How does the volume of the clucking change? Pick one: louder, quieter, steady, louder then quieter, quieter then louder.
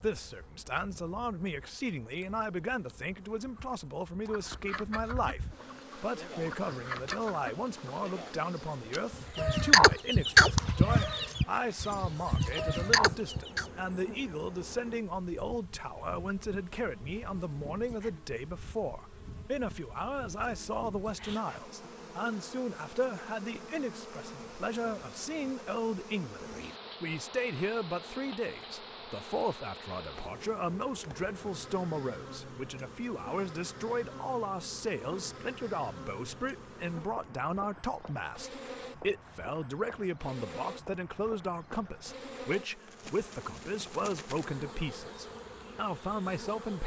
louder then quieter.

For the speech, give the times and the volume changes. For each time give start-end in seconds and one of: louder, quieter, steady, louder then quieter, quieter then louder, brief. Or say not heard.
0.0-46.8 steady.